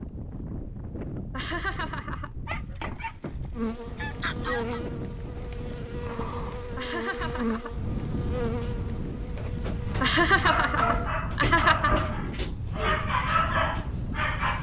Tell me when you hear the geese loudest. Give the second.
4 s.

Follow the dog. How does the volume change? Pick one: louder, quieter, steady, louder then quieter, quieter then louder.
louder.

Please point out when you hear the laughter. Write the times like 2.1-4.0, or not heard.
1.3-2.3, 6.8-7.7, 10.0-12.1.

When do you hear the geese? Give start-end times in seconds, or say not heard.
2.5-4.8.